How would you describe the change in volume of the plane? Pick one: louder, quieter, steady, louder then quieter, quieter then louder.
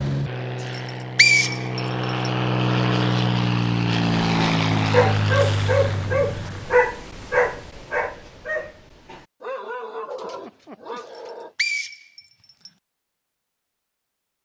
louder then quieter.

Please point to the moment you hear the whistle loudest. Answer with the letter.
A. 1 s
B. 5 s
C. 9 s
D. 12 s
A.